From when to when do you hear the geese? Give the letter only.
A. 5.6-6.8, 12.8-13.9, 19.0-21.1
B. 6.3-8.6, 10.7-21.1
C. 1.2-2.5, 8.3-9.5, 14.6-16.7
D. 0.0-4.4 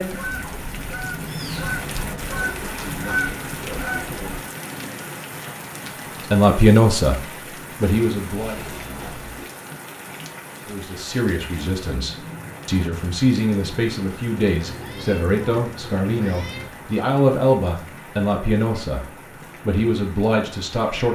D.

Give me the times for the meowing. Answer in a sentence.
The meowing can be heard from 1.2 to 2.5 s, from 8.3 to 9.5 s and from 14.6 to 16.7 s.